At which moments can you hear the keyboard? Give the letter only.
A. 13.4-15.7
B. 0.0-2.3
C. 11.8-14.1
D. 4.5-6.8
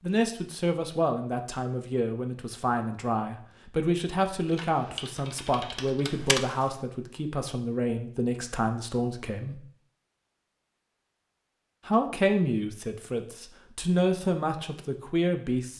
D.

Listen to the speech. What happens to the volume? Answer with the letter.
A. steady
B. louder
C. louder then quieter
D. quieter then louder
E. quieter
A.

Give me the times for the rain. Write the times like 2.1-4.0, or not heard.
not heard.